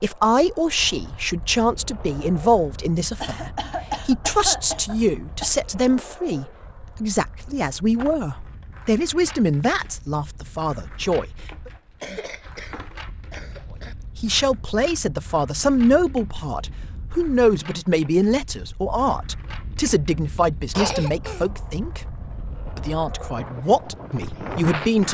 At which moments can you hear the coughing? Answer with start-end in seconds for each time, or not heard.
3.2-5.6, 12.0-13.9, 20.8-21.4.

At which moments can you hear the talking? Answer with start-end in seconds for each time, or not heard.
0.0-11.7, 14.2-25.0.